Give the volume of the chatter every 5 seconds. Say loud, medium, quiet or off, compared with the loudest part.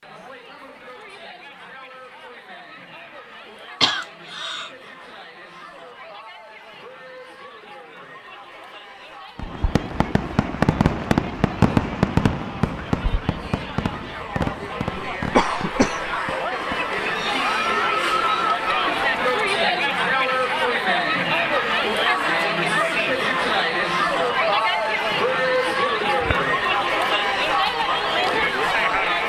quiet, quiet, quiet, loud, loud, loud.